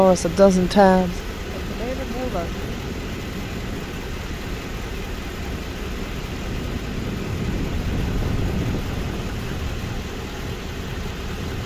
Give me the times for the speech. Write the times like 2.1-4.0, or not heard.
0.0-2.6.